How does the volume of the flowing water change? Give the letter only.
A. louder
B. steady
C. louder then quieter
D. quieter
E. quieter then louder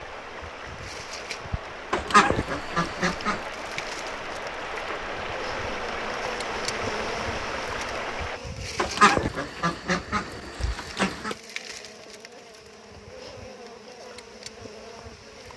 A.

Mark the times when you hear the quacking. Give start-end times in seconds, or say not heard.
1.9-3.5, 8.8-11.3.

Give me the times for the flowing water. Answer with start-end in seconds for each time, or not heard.
0.0-8.4.